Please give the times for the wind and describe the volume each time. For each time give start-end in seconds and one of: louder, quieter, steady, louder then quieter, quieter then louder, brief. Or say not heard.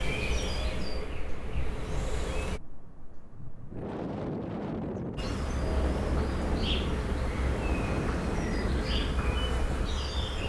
0.0-10.4 louder.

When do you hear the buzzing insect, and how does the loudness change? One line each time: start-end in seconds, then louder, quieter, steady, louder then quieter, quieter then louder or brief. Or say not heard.
0.0-2.6 brief
5.2-10.4 steady.